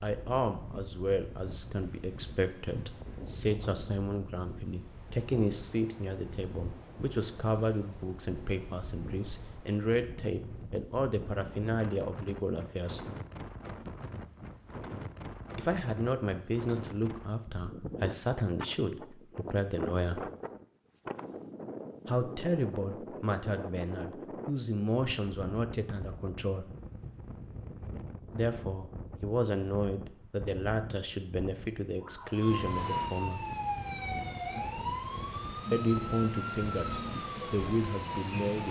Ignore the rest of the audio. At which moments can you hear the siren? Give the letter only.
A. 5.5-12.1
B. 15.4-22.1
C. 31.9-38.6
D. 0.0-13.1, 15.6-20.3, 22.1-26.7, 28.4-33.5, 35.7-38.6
C.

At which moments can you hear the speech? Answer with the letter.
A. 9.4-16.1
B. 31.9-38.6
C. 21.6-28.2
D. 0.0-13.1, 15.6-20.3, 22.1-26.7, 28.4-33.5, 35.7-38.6
D.